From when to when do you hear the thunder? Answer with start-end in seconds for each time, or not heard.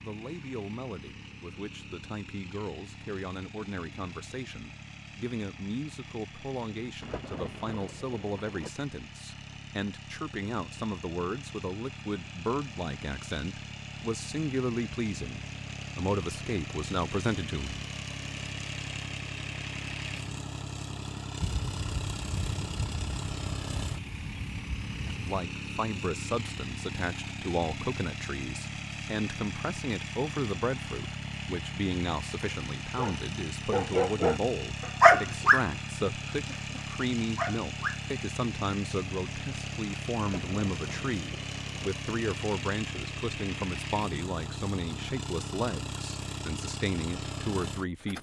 7.0-8.7, 21.4-25.4, 40.2-41.9.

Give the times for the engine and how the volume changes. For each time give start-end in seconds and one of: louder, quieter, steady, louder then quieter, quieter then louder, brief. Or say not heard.
0.0-48.1 louder.